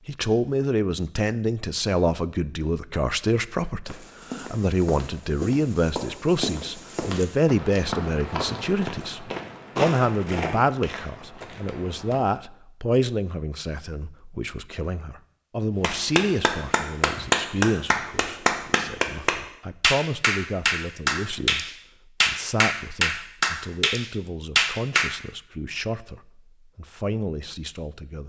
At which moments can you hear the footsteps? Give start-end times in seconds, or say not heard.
3.9-12.2.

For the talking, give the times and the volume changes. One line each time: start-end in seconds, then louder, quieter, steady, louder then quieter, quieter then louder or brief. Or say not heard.
0.1-28.2 quieter.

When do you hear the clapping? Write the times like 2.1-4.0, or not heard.
15.8-25.1.